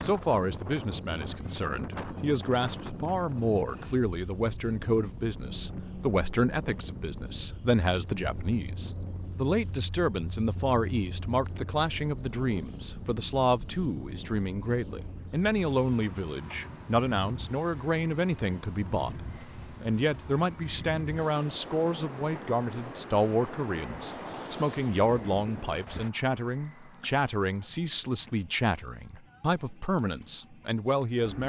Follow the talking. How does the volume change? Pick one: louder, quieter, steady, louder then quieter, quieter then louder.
steady.